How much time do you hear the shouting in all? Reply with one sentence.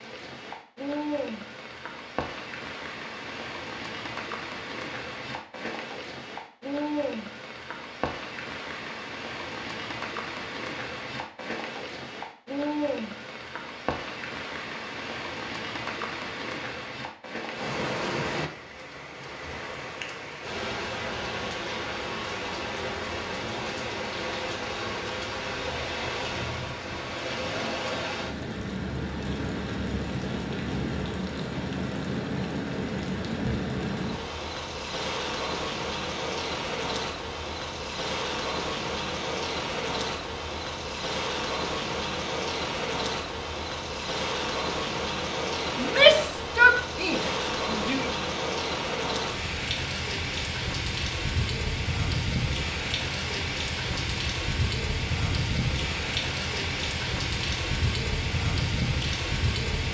The shouting can be heard for 2 seconds in total.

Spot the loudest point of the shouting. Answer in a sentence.
The loudest moment of the shouting is at 46 seconds.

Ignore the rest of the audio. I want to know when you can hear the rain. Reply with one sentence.
The rain can be heard from 0.0 to 59.8 s.